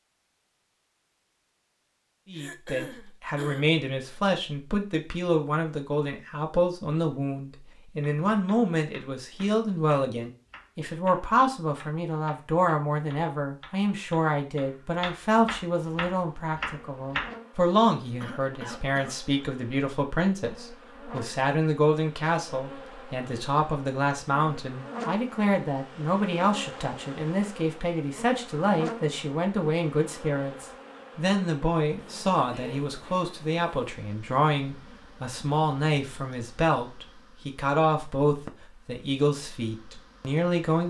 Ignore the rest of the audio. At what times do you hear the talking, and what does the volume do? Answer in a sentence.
The talking can be heard from 2.2 to 40.8 s, at a steady volume.